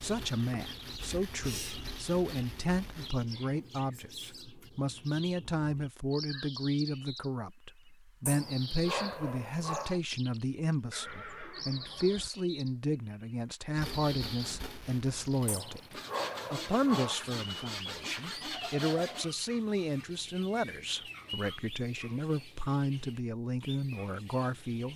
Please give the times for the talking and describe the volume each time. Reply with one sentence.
The talking can be heard from 0.0 to 24.9 s, at a steady volume.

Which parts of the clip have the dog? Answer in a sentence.
You can hear the dog from 8.2 to 10.0 s and from 15.4 to 17.1 s.